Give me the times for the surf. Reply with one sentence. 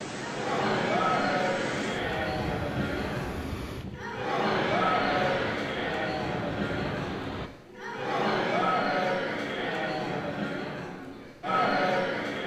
The surf can be heard from 0.0 to 7.5 s.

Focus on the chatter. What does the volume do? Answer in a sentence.
The loudness of the chatter stays about the same.